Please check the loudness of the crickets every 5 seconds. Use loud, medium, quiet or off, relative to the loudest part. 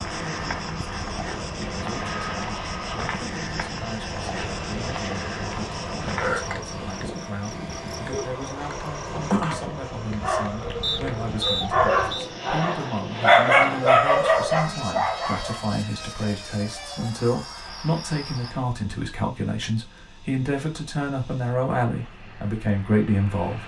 loud, loud, quiet, medium, off.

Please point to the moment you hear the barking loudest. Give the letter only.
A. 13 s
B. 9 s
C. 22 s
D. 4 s
A.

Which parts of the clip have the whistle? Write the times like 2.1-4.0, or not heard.
10.8-12.3.